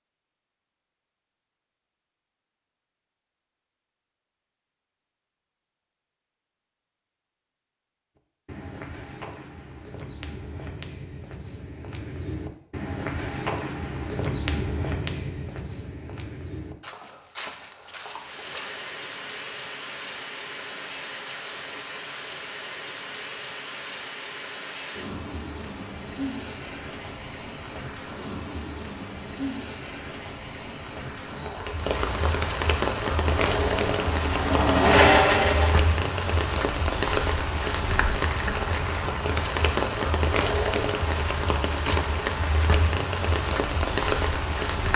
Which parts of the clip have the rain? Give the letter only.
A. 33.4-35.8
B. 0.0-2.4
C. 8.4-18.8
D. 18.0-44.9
D.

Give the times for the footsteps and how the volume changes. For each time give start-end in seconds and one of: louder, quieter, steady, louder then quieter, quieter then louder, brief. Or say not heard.
8.4-18.8 louder then quieter.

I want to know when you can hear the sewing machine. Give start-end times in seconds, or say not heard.
33.4-35.8.